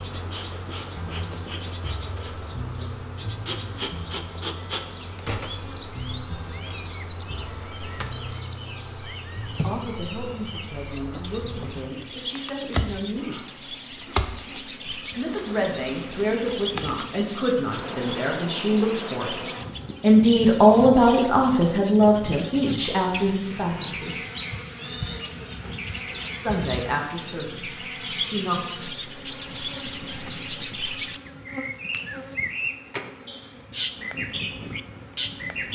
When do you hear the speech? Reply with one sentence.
The speech can be heard from 9.6 to 13.6 s, from 15.2 to 19.4 s, from 20.0 to 24.1 s and from 26.4 to 28.6 s.